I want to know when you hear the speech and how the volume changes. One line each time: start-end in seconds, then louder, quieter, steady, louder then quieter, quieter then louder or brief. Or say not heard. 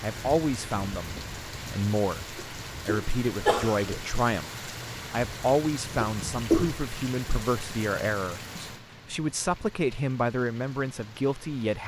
0.0-11.8 steady.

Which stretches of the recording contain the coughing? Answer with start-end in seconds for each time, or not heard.
2.4-4.0, 6.0-6.8.